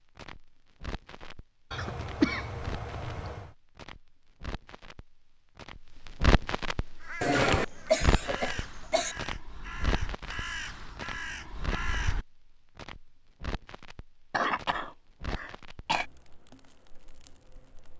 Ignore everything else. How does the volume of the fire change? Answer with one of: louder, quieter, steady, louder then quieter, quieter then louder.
louder then quieter.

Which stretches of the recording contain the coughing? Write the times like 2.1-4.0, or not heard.
1.7-3.5, 7.2-9.2, 14.3-16.1.